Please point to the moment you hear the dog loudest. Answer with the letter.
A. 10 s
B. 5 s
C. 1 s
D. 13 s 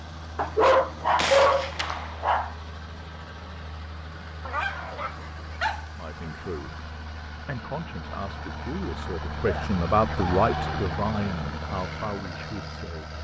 C.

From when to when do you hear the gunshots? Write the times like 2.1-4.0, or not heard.
1.1-2.2.